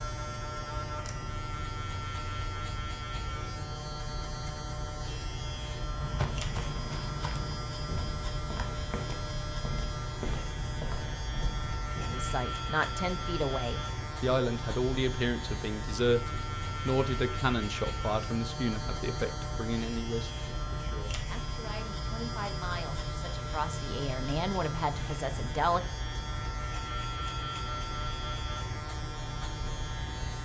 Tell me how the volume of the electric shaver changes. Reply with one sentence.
The volume of the electric shaver stays about the same.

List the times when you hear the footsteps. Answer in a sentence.
You can hear the footsteps from 6.0 to 12.3 s.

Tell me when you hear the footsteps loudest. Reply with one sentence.
The loudest moment of the footsteps is at 6 seconds.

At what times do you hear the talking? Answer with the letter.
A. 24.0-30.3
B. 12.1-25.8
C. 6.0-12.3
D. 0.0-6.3
B.